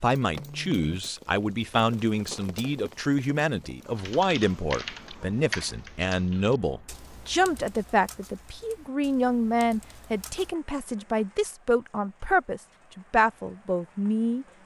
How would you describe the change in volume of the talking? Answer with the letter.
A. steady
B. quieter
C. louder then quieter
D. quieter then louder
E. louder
A.